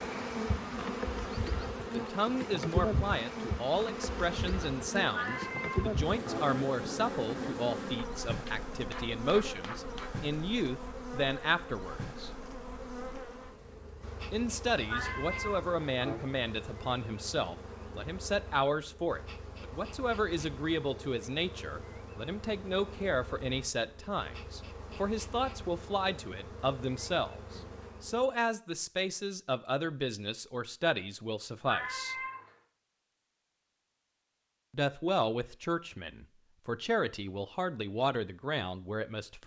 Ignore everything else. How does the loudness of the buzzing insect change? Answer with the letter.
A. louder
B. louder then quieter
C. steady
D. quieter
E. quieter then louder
D.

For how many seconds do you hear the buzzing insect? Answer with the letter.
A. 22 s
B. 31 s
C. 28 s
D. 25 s
C.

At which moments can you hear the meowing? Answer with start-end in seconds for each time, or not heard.
5.1-6.5, 14.8-16.3, 31.6-32.4.